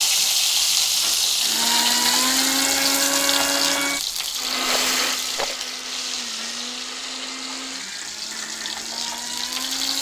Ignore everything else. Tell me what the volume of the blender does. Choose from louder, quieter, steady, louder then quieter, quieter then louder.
quieter.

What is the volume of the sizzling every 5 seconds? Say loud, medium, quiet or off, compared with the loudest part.
loud, medium.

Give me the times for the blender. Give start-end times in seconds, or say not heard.
1.4-9.9.